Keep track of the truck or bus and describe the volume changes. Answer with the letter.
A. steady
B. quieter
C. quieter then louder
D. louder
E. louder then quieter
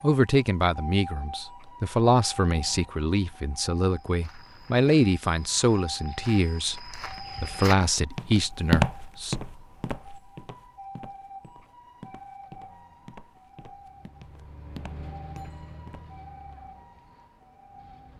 E.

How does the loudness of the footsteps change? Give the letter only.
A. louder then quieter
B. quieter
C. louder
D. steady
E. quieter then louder
A.